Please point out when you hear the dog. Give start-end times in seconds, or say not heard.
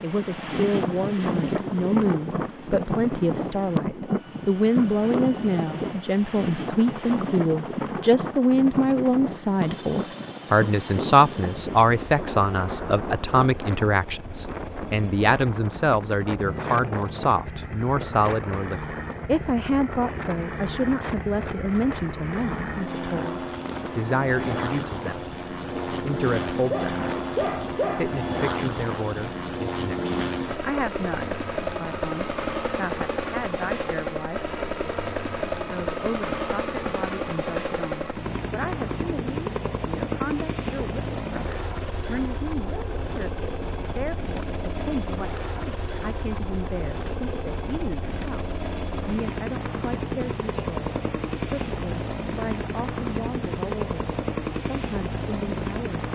26.4-28.1.